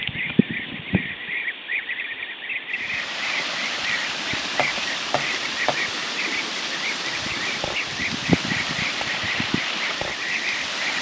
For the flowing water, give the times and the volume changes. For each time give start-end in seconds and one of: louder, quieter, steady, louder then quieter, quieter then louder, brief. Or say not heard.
2.7-10.9 steady.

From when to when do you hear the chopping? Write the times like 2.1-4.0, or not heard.
4.4-5.8.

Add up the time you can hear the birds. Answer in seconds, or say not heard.
11 s.